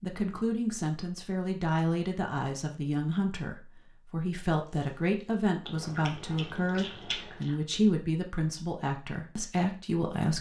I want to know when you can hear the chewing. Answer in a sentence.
You can hear the chewing from 4.7 to 7.5 s.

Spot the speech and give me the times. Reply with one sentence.
You can hear the speech from 0.0 to 10.3 s.